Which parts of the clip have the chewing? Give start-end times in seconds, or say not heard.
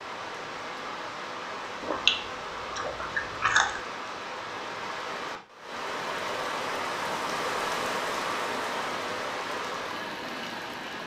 1.8-3.8.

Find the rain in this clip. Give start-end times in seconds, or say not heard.
0.0-11.0.